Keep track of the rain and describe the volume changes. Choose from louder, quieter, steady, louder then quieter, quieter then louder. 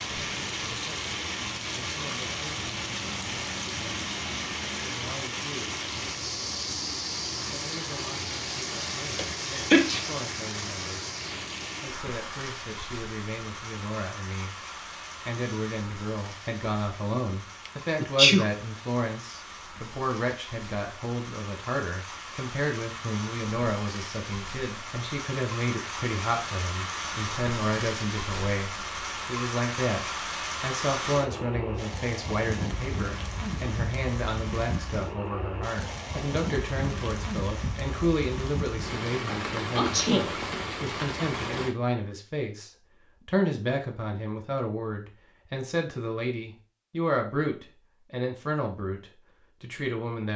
quieter then louder.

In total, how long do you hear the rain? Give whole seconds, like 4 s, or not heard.
42 s.